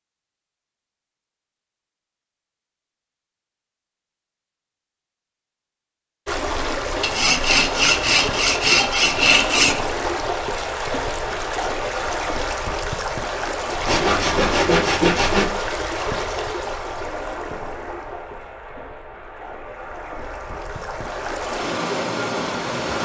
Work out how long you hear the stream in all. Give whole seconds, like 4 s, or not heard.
17 s.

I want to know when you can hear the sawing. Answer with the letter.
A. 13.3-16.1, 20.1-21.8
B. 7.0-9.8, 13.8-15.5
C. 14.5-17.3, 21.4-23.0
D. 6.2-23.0
B.